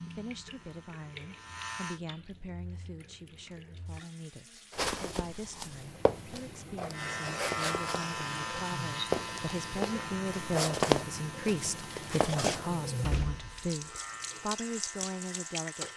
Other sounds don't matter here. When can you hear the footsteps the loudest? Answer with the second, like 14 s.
11 s.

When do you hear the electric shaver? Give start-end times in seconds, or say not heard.
0.0-2.0, 6.9-15.9.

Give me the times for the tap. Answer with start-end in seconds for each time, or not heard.
0.0-15.9.